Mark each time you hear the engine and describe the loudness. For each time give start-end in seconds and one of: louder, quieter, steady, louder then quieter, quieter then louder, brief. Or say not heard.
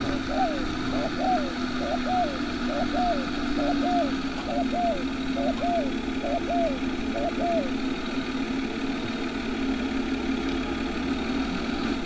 0.0-12.0 steady.